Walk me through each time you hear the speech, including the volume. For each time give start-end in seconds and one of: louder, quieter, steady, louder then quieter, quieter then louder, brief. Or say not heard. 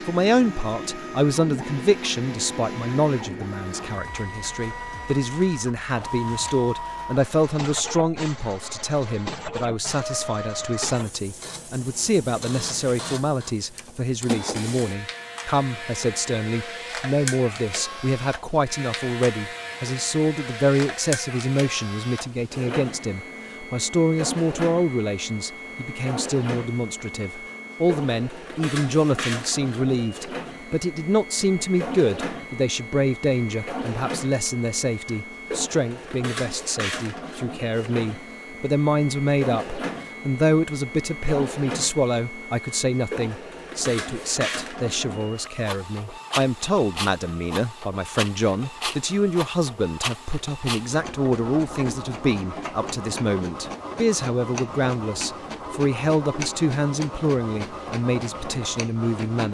0.1-59.4 steady.